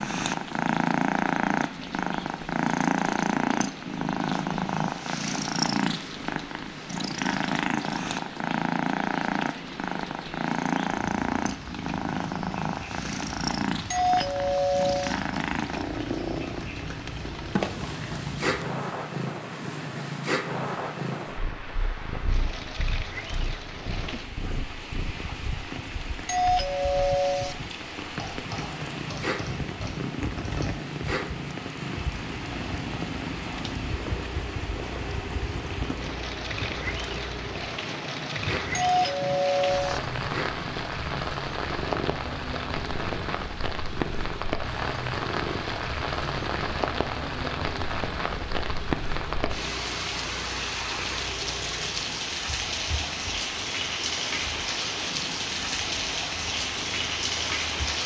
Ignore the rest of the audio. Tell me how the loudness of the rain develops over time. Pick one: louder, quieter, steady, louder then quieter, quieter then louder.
louder.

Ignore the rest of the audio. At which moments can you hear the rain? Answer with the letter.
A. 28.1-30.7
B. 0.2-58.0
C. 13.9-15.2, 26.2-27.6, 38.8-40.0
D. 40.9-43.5
B.